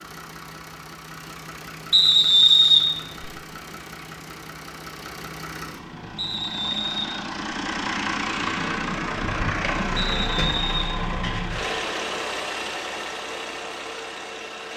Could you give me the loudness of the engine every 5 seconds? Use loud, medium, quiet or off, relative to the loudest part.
medium, loud, loud.